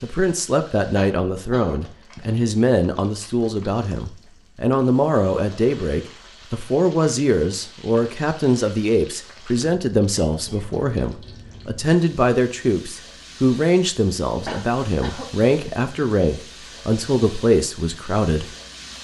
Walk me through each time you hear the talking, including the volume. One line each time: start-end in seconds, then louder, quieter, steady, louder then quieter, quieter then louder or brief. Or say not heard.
0.0-18.5 steady.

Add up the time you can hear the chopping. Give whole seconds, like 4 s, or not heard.
not heard.